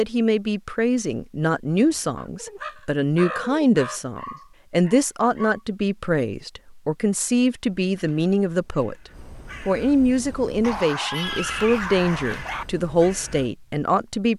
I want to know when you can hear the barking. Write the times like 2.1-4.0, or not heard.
4.2-5.6, 10.6-12.7.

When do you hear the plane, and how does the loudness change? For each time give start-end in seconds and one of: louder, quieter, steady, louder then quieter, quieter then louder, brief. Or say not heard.
not heard.